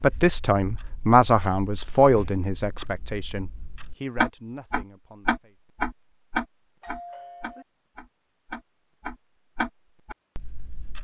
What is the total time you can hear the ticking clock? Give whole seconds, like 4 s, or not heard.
11 s.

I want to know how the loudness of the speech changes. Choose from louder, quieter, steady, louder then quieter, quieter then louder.
quieter.